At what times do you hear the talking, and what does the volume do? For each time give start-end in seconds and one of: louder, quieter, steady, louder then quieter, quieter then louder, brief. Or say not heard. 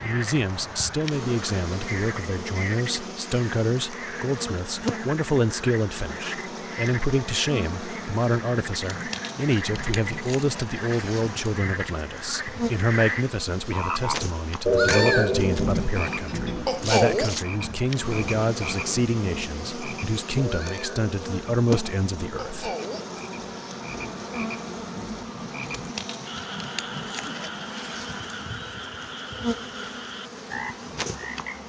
0.0-22.7 steady.